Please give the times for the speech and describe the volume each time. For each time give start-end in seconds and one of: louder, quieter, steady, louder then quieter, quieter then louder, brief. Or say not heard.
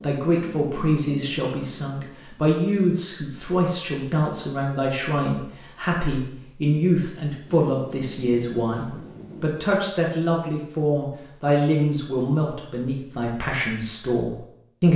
0.0-14.9 steady.